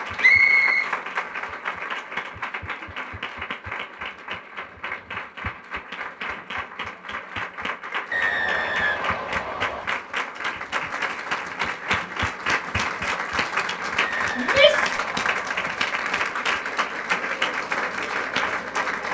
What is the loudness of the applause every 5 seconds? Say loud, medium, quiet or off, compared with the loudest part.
medium, medium, loud, loud.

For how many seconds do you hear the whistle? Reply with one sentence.
The whistle can be heard for 4 seconds in total.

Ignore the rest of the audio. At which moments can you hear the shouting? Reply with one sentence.
The shouting can be heard from 14.3 to 14.9 s.